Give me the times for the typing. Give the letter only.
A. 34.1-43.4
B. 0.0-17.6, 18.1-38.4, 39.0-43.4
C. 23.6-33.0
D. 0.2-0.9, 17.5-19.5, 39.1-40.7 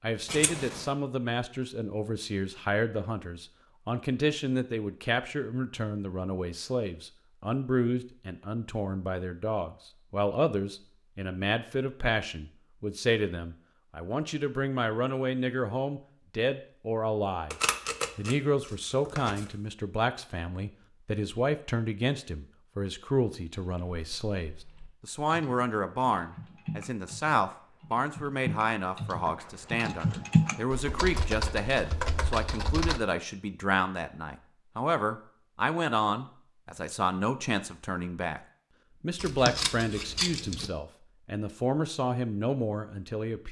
C.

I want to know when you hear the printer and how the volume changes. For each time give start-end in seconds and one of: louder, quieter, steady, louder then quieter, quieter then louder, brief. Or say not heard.
not heard.